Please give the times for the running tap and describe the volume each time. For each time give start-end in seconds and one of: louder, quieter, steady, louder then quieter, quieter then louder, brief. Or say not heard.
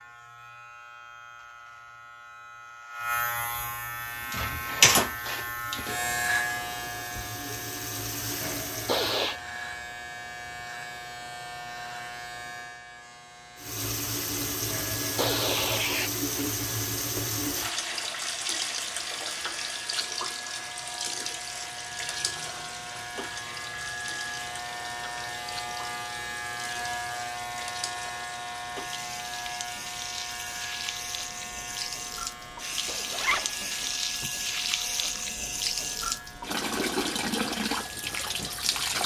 3.9-9.3 louder
13.6-39.0 quieter then louder.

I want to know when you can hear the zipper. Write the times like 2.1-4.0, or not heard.
33.1-33.6.